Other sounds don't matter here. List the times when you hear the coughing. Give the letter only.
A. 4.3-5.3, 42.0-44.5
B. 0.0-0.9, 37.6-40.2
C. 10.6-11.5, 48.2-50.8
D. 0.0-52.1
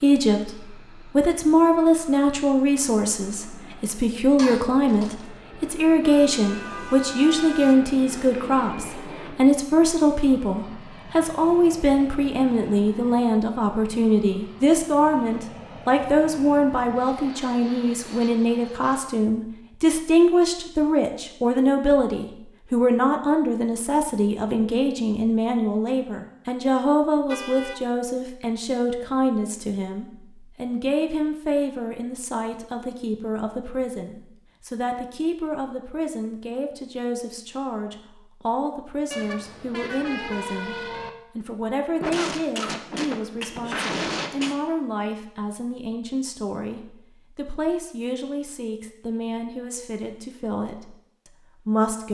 A.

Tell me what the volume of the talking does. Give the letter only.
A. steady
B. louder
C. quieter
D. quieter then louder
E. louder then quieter
C.